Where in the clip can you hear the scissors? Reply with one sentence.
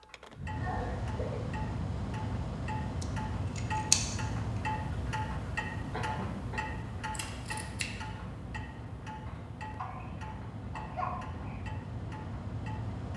The scissors can be heard from 3.0 to 4.2 s and from 7.1 to 7.9 s.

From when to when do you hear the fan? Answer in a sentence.
You can hear the fan from 0.0 to 13.1 s.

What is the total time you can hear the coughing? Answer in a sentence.
You can hear the coughing for 4 seconds altogether.